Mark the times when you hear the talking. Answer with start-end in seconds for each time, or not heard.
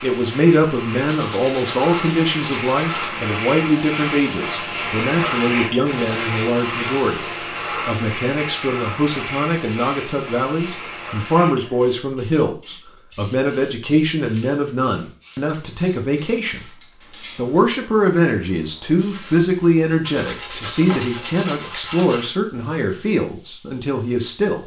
0.0-7.2, 7.8-16.7, 17.4-24.6.